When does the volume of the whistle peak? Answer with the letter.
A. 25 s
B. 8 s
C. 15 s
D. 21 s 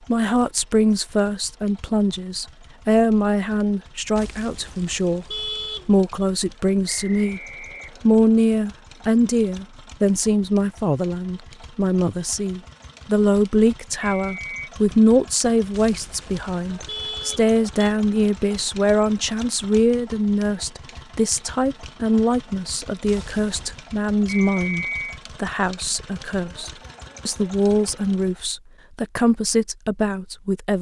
A.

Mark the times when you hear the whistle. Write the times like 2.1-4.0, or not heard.
6.8-8.1, 14.2-14.7, 24.2-25.2.